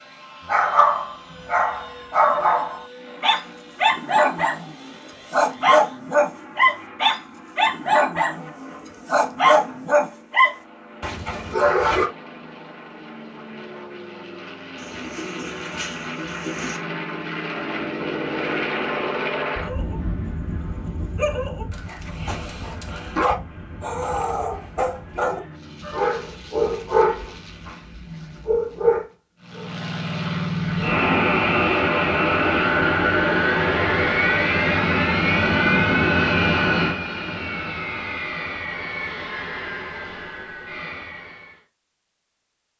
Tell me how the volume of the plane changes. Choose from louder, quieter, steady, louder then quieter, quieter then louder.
louder.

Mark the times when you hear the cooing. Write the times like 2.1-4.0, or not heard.
14.8-16.8.